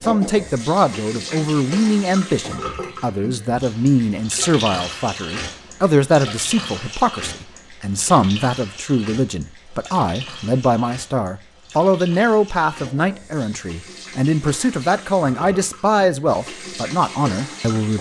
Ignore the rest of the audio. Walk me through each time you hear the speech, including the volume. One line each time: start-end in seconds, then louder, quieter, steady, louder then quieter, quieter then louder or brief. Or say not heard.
0.0-17.9 steady.